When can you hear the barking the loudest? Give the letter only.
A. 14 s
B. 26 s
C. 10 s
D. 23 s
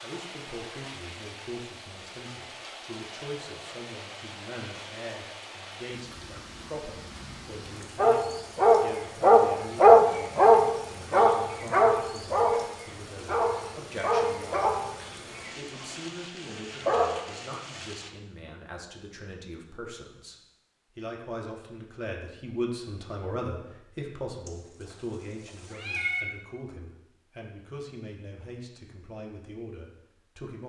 C.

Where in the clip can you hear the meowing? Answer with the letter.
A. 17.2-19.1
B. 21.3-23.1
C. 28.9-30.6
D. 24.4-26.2
D.